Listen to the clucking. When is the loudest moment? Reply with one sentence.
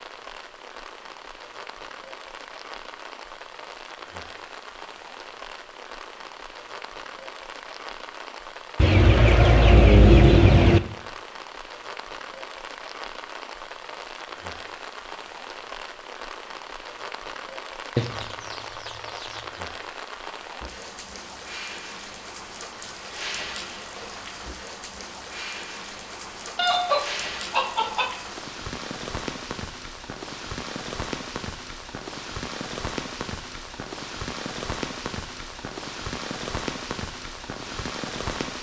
The loudest moment of the clucking is at 10 seconds.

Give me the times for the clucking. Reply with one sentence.
The clucking can be heard from 8.8 to 10.8 s, from 17.9 to 19.4 s and from 26.6 to 28.1 s.